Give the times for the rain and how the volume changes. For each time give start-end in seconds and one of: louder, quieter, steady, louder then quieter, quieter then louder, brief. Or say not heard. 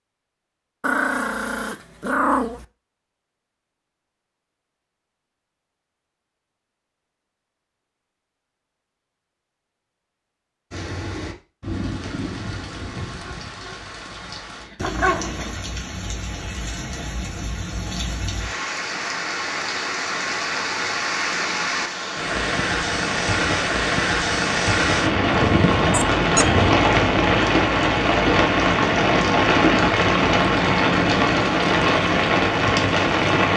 10.7-33.5 louder.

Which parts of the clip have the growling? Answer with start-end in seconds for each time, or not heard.
0.8-2.6, 14.8-15.6, 25.3-26.8.